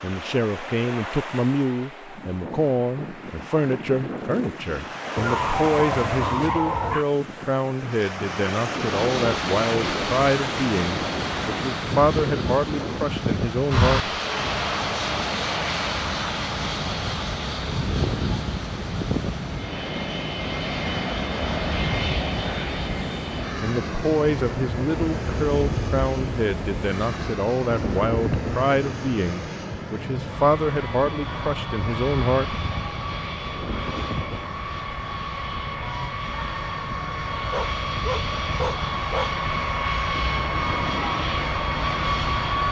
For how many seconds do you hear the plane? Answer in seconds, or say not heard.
34 s.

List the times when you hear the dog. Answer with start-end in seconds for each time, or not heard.
5.2-7.0, 37.5-39.4.